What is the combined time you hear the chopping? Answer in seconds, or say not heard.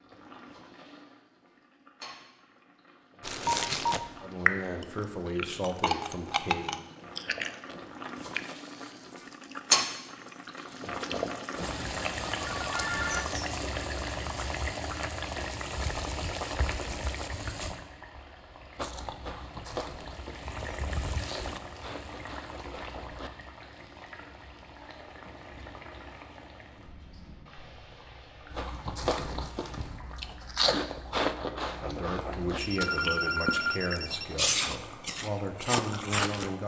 not heard.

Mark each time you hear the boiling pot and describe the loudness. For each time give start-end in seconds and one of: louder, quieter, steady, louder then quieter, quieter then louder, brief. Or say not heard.
0.0-36.6 louder then quieter.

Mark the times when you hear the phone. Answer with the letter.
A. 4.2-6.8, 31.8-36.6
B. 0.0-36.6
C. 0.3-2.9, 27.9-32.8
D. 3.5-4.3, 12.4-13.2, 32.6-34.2
D.